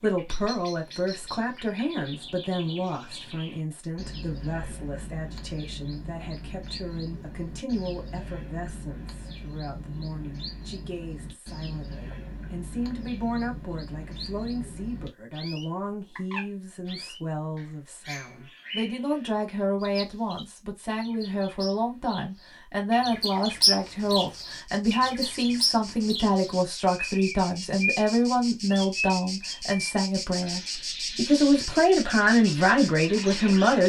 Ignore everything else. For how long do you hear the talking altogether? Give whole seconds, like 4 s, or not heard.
34 s.